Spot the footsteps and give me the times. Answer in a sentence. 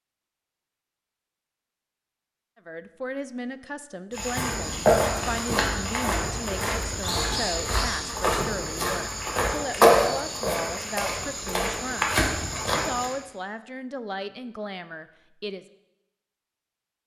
You can hear the footsteps from 4.1 to 13.2 s.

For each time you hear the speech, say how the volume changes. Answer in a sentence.
You can hear the speech from 2.5 to 15.7 s, at a steady volume.